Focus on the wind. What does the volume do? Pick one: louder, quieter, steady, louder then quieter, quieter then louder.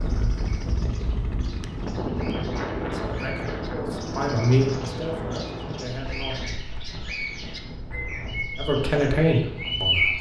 quieter.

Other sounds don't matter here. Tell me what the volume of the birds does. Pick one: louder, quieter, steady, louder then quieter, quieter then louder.
louder.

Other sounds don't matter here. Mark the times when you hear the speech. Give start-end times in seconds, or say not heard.
2.9-6.5, 8.6-10.1.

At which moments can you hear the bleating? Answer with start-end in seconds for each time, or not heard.
not heard.